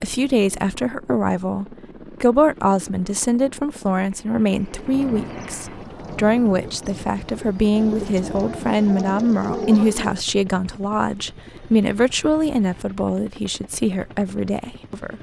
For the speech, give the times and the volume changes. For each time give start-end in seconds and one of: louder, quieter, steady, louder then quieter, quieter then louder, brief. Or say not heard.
0.0-15.1 steady.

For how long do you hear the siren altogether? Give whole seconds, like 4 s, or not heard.
not heard.